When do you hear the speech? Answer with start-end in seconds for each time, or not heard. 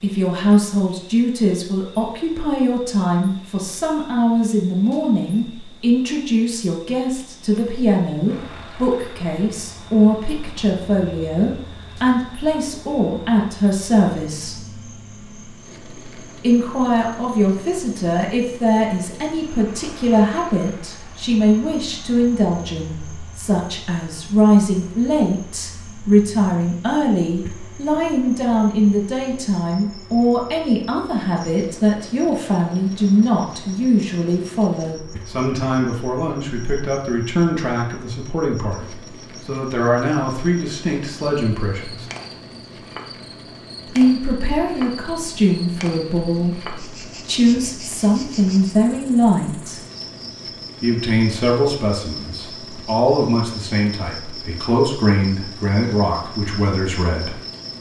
0.0-14.6, 16.4-42.0, 44.0-49.8, 50.8-57.4.